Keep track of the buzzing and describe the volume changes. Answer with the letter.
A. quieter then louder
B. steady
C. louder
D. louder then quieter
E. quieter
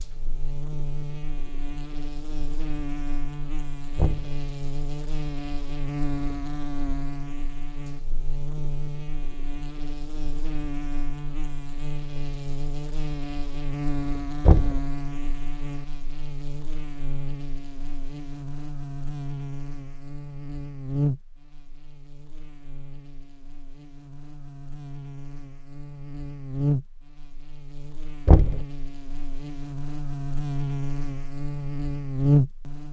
C.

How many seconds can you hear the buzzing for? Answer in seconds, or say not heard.
33 s.